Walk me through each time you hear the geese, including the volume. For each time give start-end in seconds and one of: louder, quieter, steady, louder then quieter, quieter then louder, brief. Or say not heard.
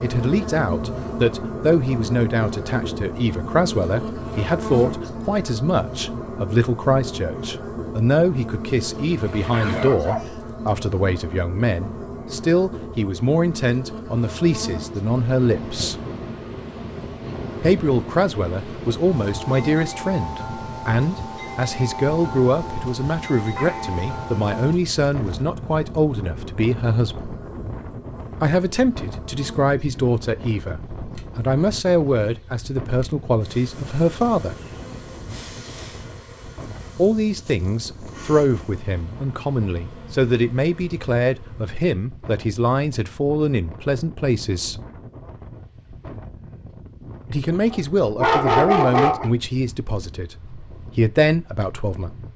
not heard.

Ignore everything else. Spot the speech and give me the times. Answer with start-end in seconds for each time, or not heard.
0.0-15.9, 17.6-27.4, 28.4-34.5, 37.0-44.8, 47.3-52.1.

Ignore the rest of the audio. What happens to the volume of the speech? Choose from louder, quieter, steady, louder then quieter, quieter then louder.
steady.